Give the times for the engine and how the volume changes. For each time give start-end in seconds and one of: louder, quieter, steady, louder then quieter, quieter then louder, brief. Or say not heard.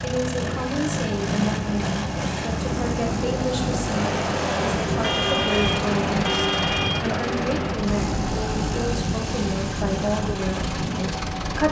0.0-11.6 steady.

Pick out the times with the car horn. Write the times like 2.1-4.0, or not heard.
5.0-7.2.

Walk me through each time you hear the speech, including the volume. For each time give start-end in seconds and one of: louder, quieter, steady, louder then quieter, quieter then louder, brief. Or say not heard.
0.0-11.6 steady.